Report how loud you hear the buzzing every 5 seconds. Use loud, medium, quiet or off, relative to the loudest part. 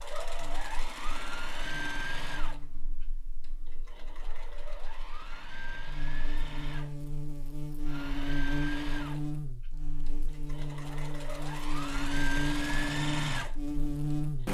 quiet, loud, loud.